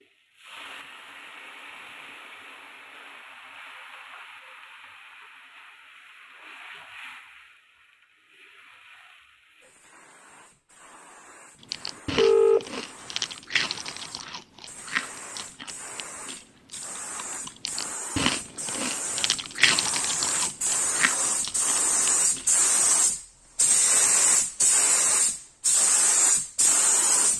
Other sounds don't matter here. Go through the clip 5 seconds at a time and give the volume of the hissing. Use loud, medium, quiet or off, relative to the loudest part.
quiet, quiet, quiet, quiet, loud, loud.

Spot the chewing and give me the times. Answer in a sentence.
The chewing can be heard from 11.6 to 22.6 s.